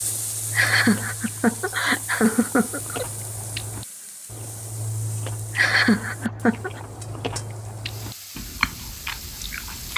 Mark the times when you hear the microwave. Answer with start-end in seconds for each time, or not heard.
not heard.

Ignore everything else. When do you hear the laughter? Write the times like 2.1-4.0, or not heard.
0.5-3.0, 5.5-6.8.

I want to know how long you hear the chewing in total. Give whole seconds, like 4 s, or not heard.
10 s.